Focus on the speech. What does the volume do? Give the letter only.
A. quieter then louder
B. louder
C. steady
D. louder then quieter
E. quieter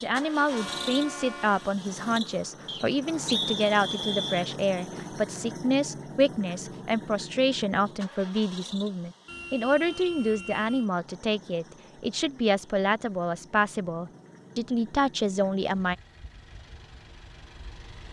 C.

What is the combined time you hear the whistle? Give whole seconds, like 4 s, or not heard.
2 s.